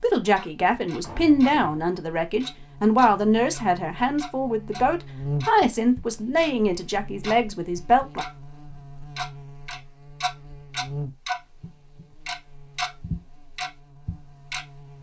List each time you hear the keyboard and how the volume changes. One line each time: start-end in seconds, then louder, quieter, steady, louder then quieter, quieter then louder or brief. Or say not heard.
not heard.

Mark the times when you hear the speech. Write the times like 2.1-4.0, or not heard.
0.0-8.2.